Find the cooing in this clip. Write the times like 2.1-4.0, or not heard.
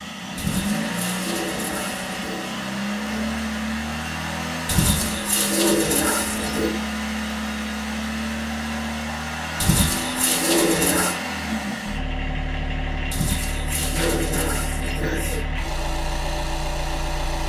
0.3-2.5, 4.7-6.8, 9.6-11.2, 13.1-15.4.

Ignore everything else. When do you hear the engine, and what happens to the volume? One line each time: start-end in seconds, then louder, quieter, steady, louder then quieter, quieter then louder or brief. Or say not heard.
0.0-17.4 steady.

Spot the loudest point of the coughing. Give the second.
14 s.